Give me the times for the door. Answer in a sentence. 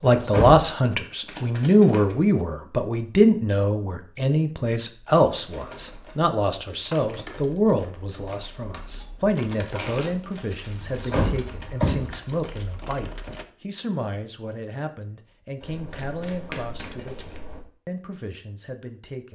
You can hear the door from 0.0 to 0.6 s and from 10.8 to 12.2 s.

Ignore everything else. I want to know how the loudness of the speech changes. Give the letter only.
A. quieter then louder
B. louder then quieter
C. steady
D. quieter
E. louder
D.